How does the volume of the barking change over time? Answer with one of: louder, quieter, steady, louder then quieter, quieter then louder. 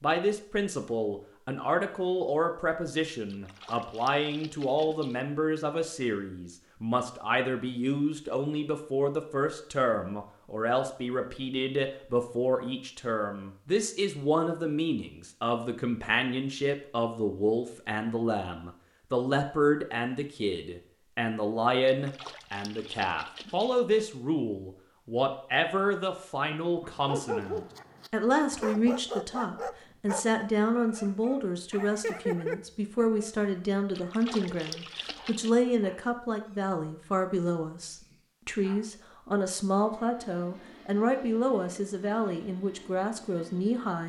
quieter.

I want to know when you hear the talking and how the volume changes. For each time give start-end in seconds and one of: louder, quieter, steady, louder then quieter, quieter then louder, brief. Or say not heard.
0.0-44.0 steady.